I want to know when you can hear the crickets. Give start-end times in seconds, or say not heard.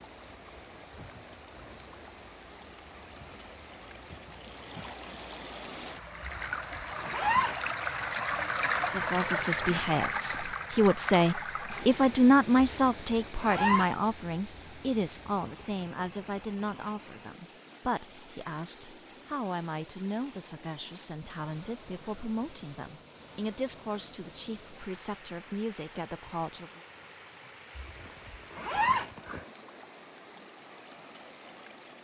0.0-16.9.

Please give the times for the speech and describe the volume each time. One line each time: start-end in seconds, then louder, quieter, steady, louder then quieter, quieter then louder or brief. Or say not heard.
8.8-26.8 quieter.